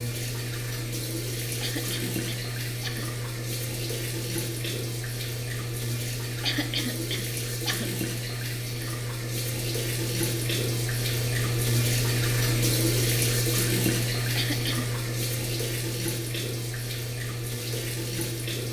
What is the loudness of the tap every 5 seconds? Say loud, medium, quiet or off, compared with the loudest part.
medium, medium, loud, medium.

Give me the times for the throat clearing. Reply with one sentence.
You can hear the throat clearing from 1.6 to 3.1 s, from 6.4 to 7.9 s and from 14.3 to 14.9 s.